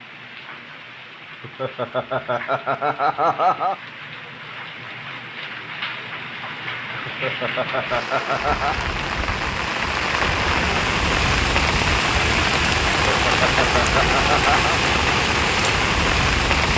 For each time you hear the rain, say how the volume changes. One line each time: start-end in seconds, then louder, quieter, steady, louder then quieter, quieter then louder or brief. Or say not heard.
0.0-16.7 louder.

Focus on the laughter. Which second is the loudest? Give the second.
3 s.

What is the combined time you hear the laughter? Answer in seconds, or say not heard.
6 s.